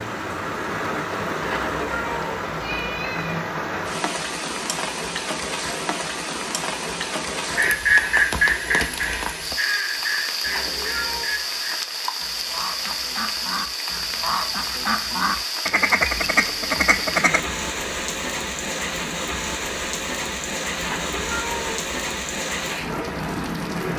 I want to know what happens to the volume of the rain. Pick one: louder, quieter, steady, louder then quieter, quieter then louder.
steady.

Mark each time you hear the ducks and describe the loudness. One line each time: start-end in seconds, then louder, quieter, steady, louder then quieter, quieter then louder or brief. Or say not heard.
7.5-17.4 quieter then louder.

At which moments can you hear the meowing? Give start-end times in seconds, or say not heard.
1.4-3.5, 10.4-11.4, 20.8-21.9.